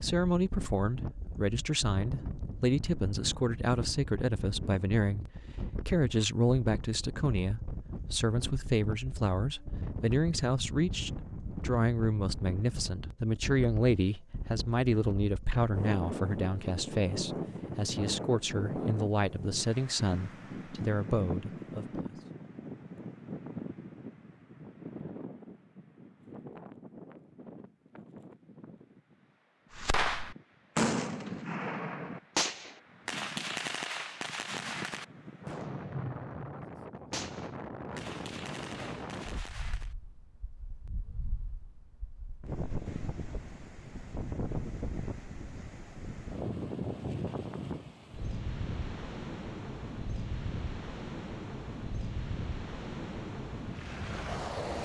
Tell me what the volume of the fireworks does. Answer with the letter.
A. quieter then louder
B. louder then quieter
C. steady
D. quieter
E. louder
D.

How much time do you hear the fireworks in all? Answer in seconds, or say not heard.
10 s.